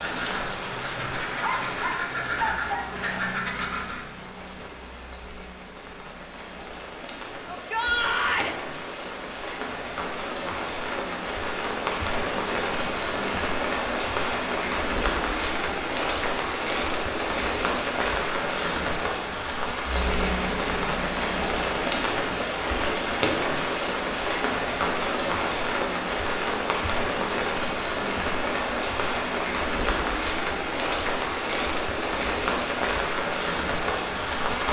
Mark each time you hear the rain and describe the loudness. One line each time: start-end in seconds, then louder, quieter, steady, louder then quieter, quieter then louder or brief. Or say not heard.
0.0-34.6 louder.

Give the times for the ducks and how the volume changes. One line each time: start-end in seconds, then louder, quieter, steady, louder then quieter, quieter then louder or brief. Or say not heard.
0.0-4.0 louder.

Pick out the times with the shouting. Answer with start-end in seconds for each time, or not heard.
7.5-8.6.